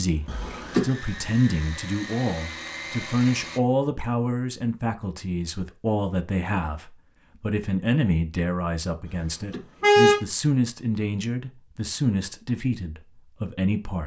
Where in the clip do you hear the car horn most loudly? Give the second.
10 s.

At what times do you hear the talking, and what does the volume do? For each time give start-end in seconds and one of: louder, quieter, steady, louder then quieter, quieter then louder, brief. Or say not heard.
0.0-14.0 steady.